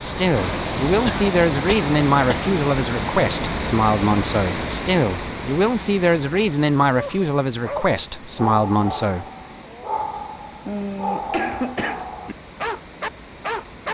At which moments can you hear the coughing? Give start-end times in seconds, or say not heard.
0.4-2.4, 10.7-12.1.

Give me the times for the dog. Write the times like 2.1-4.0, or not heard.
7.0-13.9.